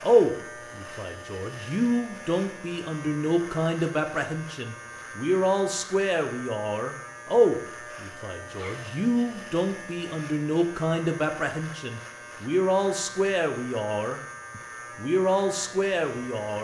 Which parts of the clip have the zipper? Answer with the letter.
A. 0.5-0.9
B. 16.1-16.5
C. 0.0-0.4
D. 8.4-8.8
D.